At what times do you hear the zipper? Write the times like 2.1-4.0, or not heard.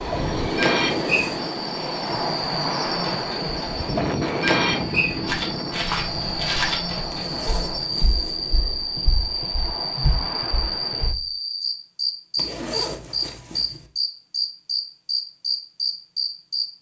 0.9-1.5, 7.1-8.6, 12.3-13.9.